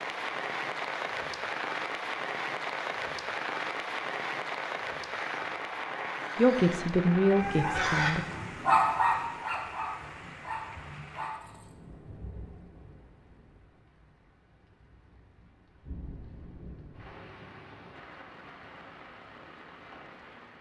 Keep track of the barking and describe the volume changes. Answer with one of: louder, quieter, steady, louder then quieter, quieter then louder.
louder then quieter.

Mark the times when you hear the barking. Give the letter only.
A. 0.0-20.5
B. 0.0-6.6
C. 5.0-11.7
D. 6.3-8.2
C.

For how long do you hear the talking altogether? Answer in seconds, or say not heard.
2 s.